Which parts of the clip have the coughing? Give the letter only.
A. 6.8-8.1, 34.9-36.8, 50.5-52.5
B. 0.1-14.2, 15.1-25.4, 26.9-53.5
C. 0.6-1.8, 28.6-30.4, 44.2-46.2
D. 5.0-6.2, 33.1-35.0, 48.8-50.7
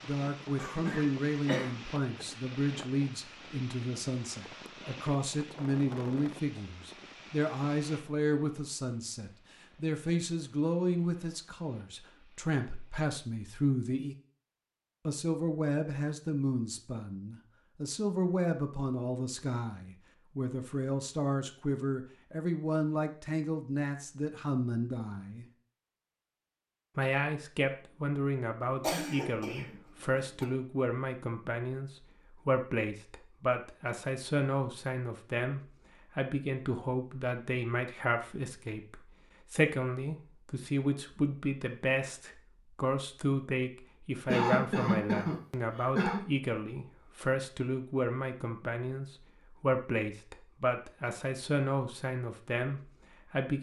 C.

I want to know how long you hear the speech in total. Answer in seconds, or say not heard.
51 s.